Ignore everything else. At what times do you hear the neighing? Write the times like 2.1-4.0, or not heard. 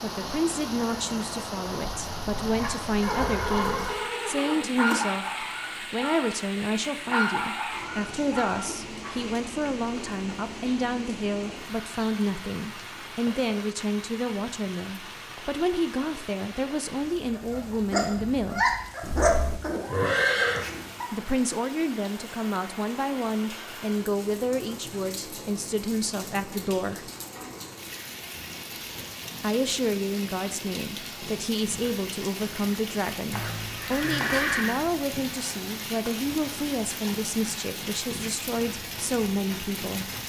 3.0-5.0, 19.0-20.7, 33.3-34.8.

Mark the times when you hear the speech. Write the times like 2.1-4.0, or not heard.
0.0-18.8, 21.1-27.1, 29.4-40.1.